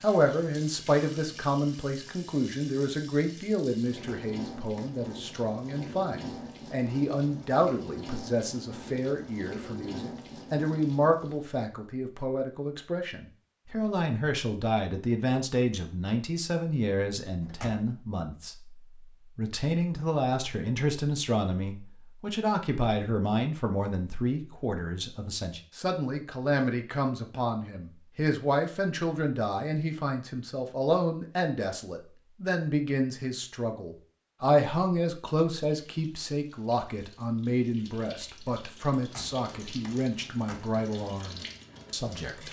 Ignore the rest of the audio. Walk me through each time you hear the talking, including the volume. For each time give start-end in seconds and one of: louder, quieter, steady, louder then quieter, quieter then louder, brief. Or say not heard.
0.0-42.4 steady.